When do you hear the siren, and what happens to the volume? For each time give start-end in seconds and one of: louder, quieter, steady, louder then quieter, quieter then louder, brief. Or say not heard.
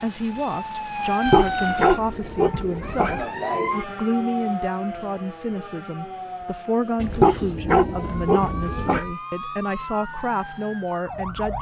0.0-11.5 quieter.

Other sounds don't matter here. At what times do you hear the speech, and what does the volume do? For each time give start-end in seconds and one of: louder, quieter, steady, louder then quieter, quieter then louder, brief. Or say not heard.
0.0-11.5 steady.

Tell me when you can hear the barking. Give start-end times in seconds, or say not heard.
1.2-3.2, 7.2-9.2.